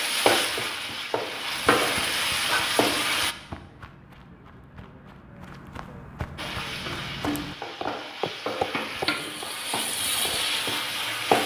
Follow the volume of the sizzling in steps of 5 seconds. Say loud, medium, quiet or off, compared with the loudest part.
loud, medium, loud.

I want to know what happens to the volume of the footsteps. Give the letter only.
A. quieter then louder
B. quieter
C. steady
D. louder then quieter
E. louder
E.